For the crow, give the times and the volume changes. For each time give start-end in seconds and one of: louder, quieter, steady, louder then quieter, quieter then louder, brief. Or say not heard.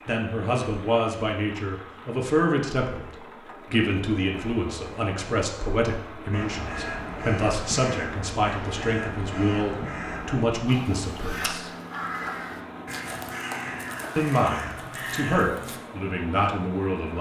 6.3-15.8 steady.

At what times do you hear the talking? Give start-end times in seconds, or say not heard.
0.1-11.7, 14.2-17.1.